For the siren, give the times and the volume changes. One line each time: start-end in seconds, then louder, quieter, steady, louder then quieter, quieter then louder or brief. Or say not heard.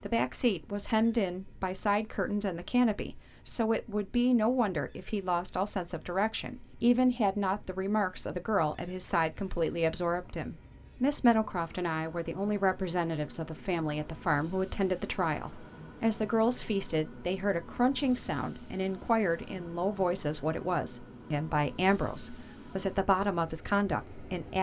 not heard.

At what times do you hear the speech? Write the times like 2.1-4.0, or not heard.
0.0-24.5.